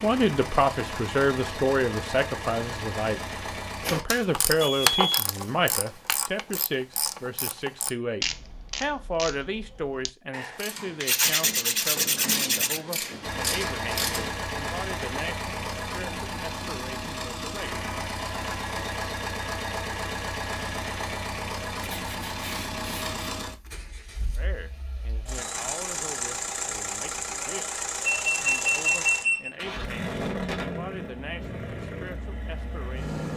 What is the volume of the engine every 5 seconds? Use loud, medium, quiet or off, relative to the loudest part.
loud, off, loud, loud, loud, loud, loud.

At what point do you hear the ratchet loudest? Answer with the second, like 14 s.
5 s.